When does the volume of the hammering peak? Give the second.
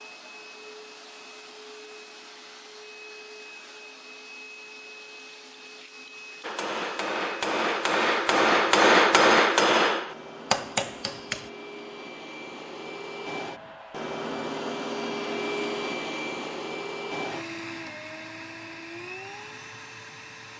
9 s.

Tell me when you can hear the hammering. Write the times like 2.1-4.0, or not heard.
6.4-11.5.